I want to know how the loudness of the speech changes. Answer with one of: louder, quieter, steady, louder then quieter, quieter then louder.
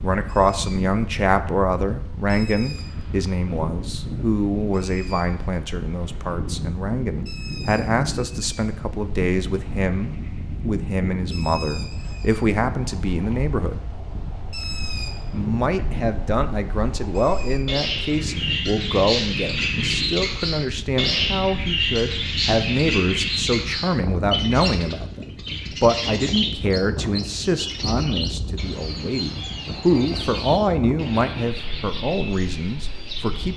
steady.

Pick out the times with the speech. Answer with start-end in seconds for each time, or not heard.
0.0-13.8, 15.3-33.5.